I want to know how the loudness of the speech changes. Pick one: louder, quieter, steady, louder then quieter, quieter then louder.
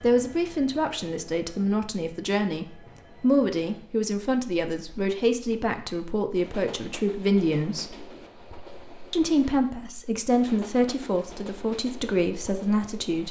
steady.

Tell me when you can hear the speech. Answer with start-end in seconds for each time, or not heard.
0.0-8.0, 9.1-13.2.